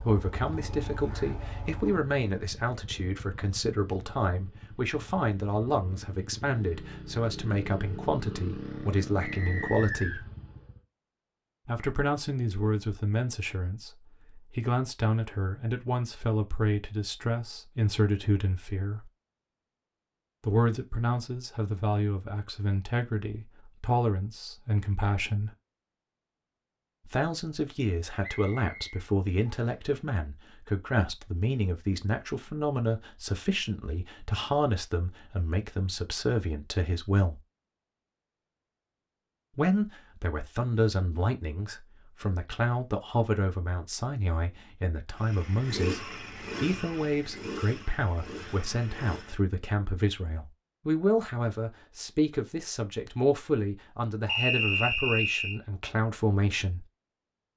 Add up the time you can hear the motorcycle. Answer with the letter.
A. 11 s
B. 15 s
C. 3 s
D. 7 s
B.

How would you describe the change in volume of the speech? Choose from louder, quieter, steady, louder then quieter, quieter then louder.
steady.